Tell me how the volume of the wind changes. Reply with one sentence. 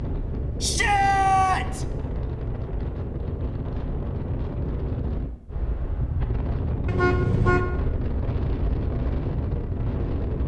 The volume of the wind stays about the same.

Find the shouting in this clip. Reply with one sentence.
The shouting can be heard from 0.6 to 1.9 s.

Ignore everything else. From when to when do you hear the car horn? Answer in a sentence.
You can hear the car horn from 6.8 to 7.7 s.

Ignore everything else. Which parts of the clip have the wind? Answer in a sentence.
You can hear the wind from 0.0 to 10.4 s.